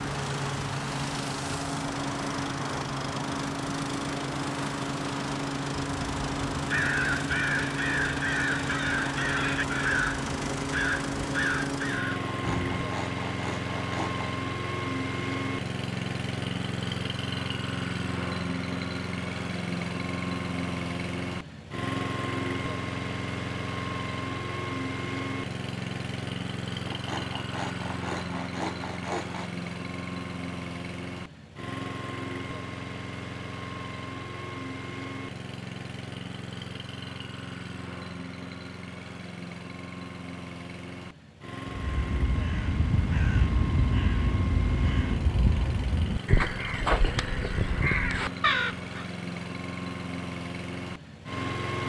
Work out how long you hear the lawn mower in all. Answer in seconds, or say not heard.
52 s.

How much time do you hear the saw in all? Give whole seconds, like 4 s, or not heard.
5 s.